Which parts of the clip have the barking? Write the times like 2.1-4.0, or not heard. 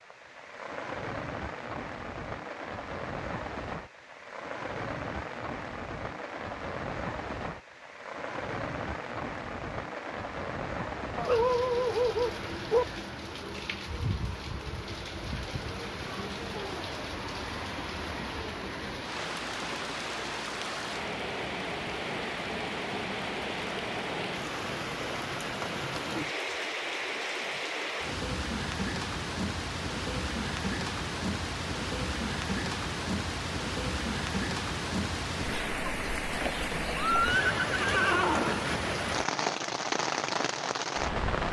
11.2-12.8.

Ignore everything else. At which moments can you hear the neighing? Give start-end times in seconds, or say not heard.
37.0-38.8.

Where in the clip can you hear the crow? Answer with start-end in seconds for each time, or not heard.
not heard.